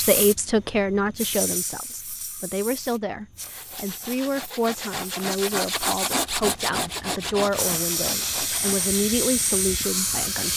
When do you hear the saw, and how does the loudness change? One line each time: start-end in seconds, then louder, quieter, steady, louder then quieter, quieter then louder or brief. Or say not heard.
3.4-9.1 louder then quieter.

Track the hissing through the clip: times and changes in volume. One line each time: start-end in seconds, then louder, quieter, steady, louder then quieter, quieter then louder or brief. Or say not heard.
0.0-10.5 quieter then louder.